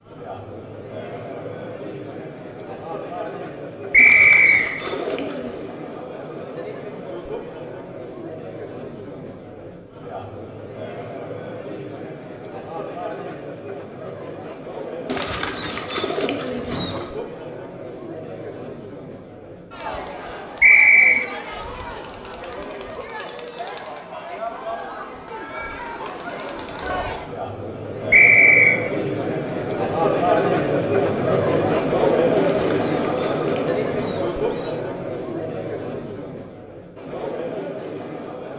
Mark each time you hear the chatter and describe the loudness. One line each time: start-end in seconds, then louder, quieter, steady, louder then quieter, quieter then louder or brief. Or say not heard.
0.0-38.5 louder.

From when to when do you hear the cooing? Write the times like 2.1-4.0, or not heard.
4.0-5.7, 15.1-17.1, 32.4-34.8.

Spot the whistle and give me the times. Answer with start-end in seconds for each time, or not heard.
3.9-4.8, 20.6-21.2, 28.1-28.8.